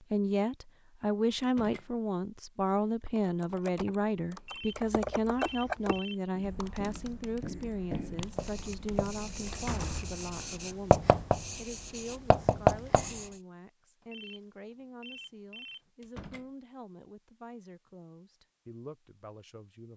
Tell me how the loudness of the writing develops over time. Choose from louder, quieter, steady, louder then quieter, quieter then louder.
louder.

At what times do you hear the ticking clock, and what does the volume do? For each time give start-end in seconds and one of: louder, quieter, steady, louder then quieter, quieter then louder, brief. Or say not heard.
not heard.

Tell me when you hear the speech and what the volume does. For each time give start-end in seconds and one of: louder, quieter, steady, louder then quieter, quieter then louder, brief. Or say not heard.
0.0-19.9 quieter.